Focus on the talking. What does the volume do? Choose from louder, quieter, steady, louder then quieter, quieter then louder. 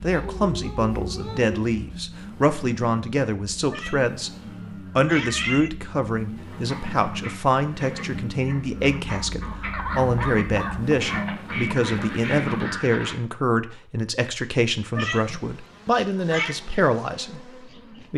steady.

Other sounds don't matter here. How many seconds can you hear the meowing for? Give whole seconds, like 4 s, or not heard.
3 s.